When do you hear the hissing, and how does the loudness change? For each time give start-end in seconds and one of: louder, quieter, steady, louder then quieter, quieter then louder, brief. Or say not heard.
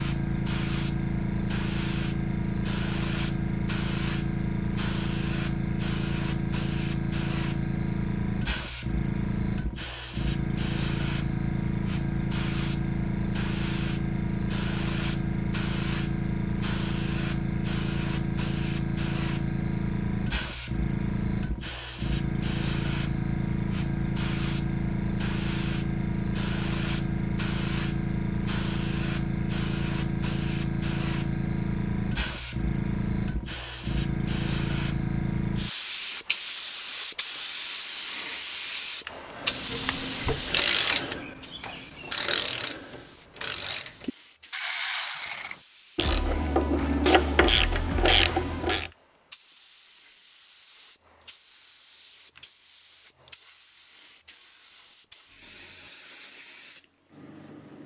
0.0-57.8 quieter.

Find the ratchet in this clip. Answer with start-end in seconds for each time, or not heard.
39.7-48.9.